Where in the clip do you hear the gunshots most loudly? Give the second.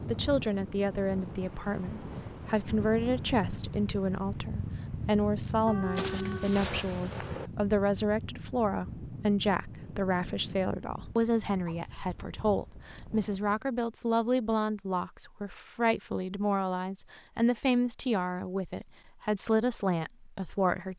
6 s.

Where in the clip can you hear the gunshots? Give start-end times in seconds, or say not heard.
5.9-7.5.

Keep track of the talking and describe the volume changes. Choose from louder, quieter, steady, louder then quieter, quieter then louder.
steady.